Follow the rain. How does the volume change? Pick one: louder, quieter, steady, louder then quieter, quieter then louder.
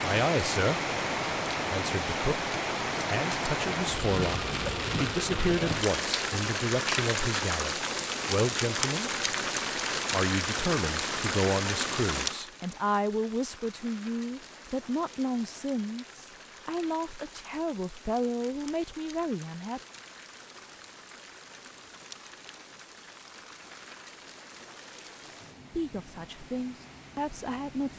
quieter.